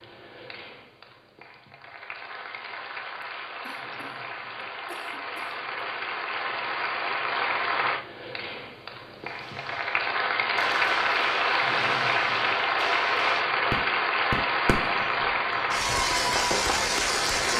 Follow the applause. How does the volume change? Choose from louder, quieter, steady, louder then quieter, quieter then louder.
louder.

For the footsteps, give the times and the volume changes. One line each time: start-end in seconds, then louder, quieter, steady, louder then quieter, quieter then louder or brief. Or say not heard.
not heard.